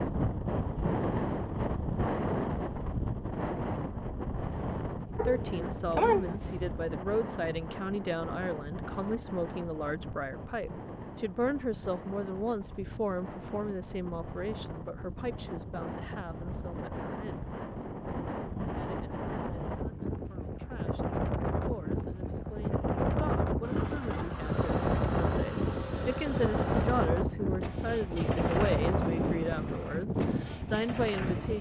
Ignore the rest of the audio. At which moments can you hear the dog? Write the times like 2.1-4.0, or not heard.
5.2-6.8.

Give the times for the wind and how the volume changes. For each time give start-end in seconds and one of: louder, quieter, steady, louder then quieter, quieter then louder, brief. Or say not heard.
0.0-31.5 quieter then louder.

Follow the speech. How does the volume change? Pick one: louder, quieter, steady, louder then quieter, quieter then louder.
quieter then louder.